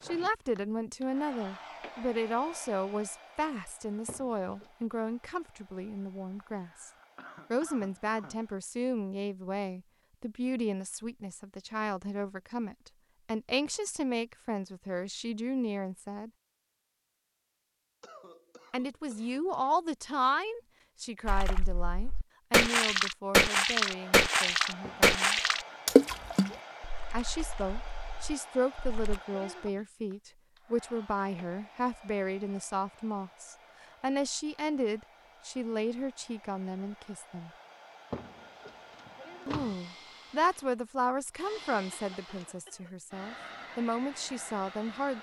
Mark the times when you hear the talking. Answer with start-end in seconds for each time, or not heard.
0.0-6.9, 7.5-16.3, 18.7-25.4, 27.1-37.5, 39.5-45.1.